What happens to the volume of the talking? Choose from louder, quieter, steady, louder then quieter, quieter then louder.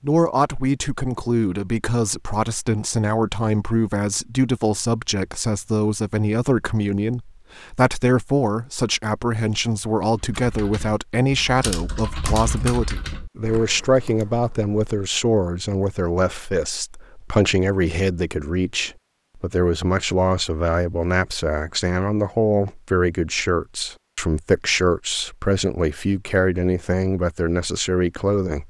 steady.